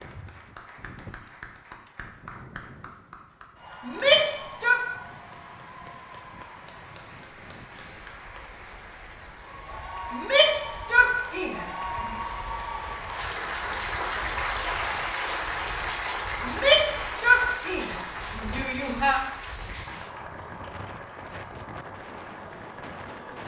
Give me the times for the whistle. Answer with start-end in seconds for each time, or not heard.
not heard.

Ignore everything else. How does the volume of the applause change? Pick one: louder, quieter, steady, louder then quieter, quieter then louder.
louder then quieter.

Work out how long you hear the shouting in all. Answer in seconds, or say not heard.
6 s.